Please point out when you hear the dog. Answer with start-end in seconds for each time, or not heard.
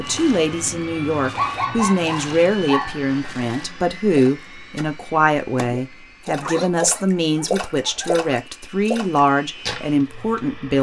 1.2-3.0, 6.4-8.3.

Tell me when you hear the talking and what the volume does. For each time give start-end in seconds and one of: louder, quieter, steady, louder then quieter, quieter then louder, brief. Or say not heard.
0.0-10.7 steady.